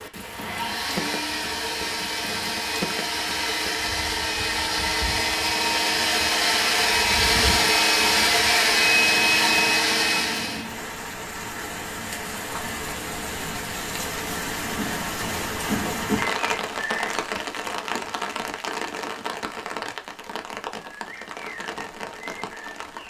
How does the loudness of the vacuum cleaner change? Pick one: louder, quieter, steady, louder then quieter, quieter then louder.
louder.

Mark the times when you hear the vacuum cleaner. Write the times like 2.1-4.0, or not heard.
0.1-10.7.